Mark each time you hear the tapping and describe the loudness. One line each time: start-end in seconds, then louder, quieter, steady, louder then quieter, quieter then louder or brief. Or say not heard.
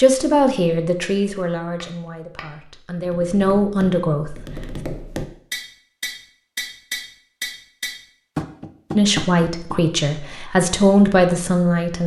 1.8-9.8 louder.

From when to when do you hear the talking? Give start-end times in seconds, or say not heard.
0.0-4.3, 8.9-12.0.